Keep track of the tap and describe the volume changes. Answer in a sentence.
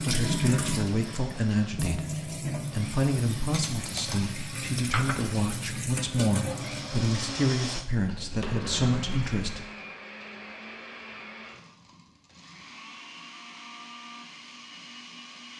The volume of the tap goes down.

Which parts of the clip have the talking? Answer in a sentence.
The talking can be heard from 0.0 to 9.7 s.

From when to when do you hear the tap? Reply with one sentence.
The tap can be heard from 0.0 to 9.4 s.